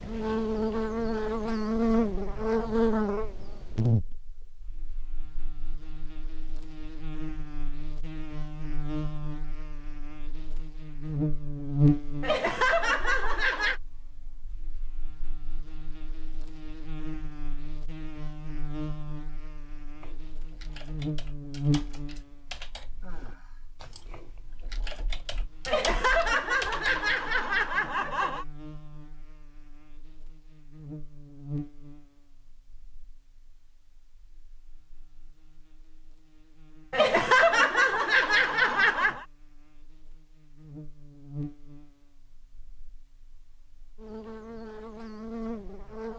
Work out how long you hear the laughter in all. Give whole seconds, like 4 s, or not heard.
7 s.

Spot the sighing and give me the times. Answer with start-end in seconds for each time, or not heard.
23.0-24.1.